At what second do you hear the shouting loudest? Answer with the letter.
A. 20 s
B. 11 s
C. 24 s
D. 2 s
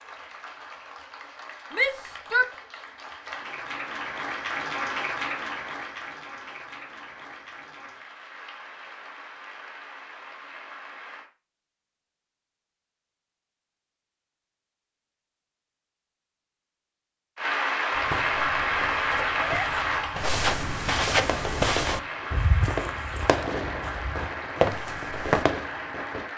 D.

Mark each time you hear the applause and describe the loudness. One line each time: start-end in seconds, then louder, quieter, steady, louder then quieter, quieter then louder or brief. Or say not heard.
0.0-11.3 louder then quieter
17.4-26.3 quieter.